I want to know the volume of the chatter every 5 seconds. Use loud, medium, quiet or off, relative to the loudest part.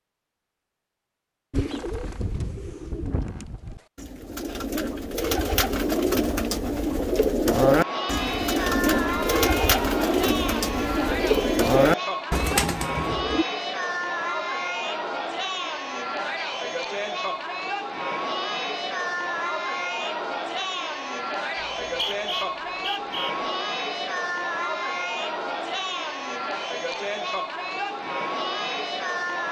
off, loud, loud, loud, loud, loud.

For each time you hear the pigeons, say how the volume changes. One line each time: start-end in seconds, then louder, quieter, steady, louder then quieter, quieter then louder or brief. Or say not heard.
1.5-13.4 louder.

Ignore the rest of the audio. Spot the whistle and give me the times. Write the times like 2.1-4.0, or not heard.
21.6-23.4.